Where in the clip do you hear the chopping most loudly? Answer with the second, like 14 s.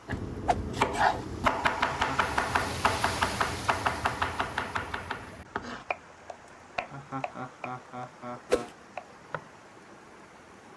1 s.